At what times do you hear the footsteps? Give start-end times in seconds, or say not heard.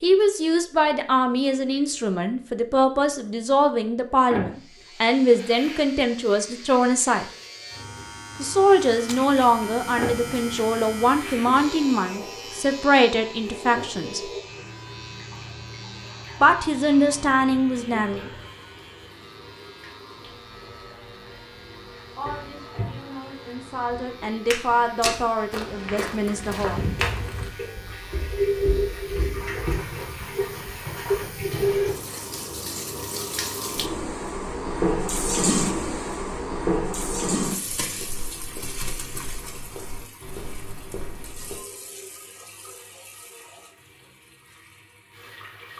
24.5-30.1, 37.6-41.6.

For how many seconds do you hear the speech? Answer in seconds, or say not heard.
20 s.